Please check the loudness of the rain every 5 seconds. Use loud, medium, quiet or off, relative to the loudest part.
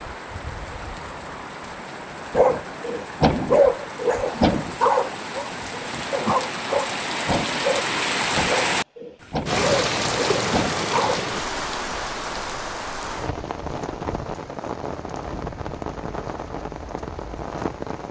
medium, loud, loud, medium.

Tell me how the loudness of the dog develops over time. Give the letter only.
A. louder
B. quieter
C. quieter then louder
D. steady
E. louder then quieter
B.